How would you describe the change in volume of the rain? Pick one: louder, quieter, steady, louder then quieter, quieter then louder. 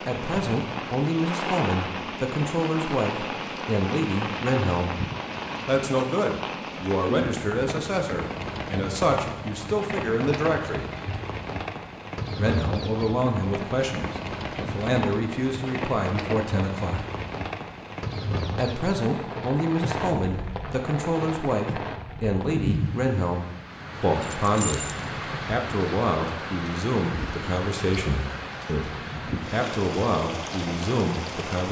steady.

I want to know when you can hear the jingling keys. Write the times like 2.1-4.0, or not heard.
24.2-25.1.